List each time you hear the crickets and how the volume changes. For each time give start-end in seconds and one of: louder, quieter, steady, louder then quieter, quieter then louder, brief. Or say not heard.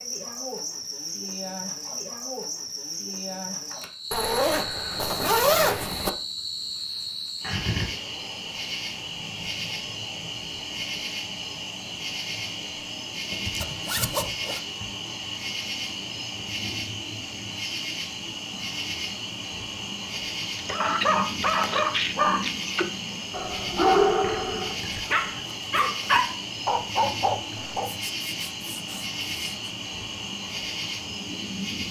0.0-31.8 steady.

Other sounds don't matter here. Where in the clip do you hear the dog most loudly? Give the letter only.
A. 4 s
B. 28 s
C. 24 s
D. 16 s
C.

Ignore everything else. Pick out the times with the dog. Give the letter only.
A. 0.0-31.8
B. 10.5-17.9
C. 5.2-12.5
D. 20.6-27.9
D.